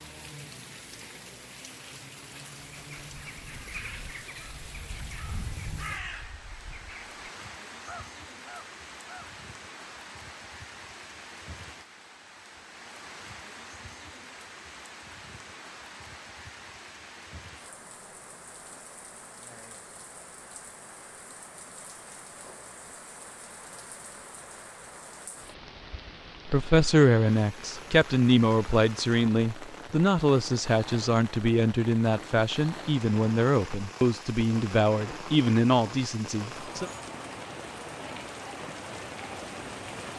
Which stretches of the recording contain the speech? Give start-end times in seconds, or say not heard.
26.4-36.9.